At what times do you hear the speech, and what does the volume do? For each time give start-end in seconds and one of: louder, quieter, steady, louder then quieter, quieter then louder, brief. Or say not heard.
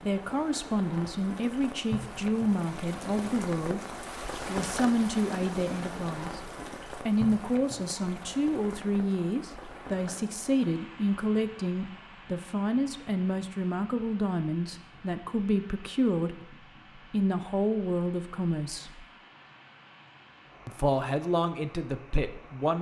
0.0-6.4 steady
7.0-19.1 steady
20.6-22.7 brief.